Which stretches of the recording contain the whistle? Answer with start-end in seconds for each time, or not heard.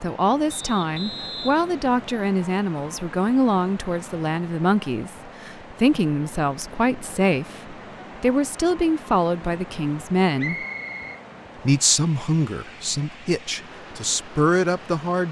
0.5-1.9, 10.3-11.7.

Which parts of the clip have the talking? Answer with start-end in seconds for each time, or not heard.
0.0-10.7, 11.7-15.2.